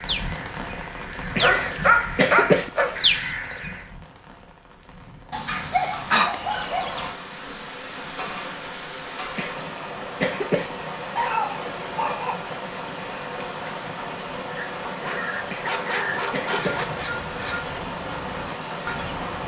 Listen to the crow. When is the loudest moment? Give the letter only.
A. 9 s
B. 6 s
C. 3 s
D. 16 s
C.